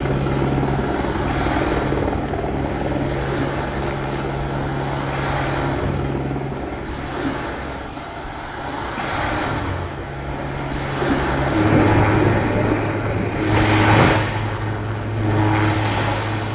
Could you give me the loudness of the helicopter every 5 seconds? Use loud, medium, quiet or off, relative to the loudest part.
loud, medium, loud, loud.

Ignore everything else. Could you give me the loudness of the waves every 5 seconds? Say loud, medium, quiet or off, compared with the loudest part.
medium, medium, loud, medium.